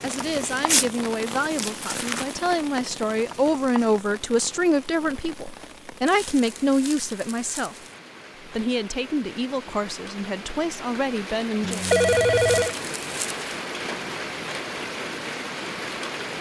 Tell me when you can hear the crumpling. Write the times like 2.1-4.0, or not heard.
0.2-2.4, 6.0-8.0, 11.7-13.4.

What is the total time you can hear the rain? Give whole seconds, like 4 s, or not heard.
16 s.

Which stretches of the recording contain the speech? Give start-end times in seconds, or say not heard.
0.0-7.8, 8.4-11.8.